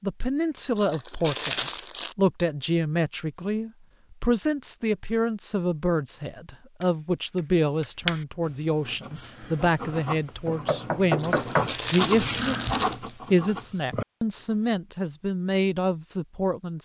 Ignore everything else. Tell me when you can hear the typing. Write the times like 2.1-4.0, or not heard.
not heard.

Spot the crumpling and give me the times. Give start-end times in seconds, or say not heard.
0.8-2.1, 11.2-13.2.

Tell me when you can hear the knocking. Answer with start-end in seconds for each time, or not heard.
10.4-11.8.